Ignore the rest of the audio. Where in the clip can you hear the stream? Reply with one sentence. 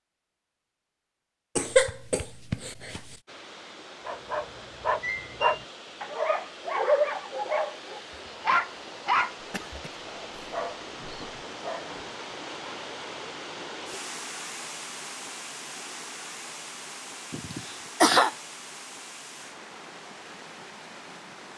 You can hear the stream from 3.2 to 21.5 s.